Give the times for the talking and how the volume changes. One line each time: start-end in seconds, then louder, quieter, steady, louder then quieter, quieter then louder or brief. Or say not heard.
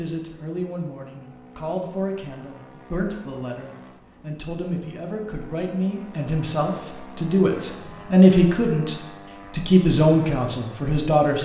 0.0-11.4 louder.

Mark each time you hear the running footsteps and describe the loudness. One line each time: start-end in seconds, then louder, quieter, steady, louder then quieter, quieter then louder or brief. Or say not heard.
not heard.